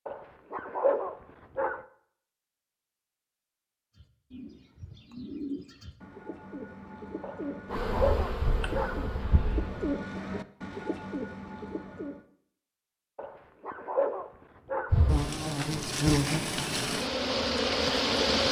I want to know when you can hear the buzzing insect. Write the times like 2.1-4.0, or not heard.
7.7-9.9, 14.9-18.4.